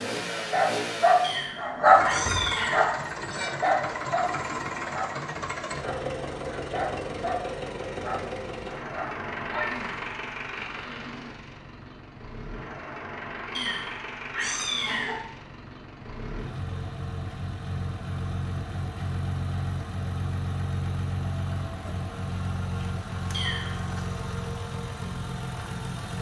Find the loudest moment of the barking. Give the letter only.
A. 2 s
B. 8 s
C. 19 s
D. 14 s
A.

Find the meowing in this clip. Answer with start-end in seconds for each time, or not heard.
1.2-3.0, 13.5-15.2, 23.3-23.9.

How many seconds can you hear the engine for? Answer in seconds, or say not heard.
26 s.